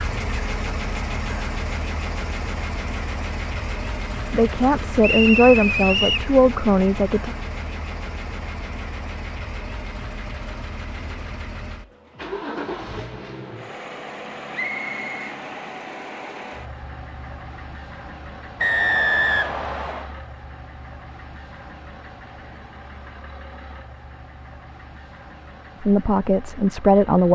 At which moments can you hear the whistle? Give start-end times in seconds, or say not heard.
5.0-6.3, 14.5-15.2, 18.6-20.1.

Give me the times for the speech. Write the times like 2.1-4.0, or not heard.
4.3-7.3, 25.8-27.3.